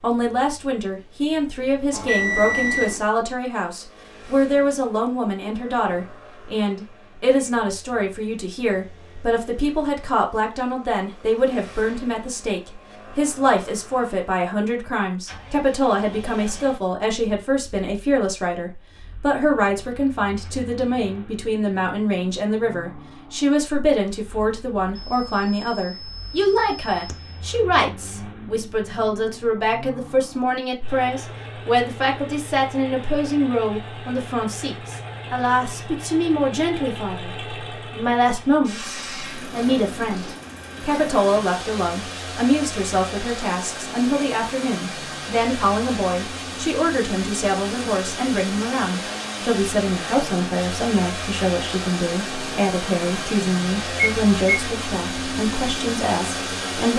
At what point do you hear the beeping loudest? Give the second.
2 s.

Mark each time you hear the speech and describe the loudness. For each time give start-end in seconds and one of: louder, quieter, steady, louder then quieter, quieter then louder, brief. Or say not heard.
0.0-56.9 steady.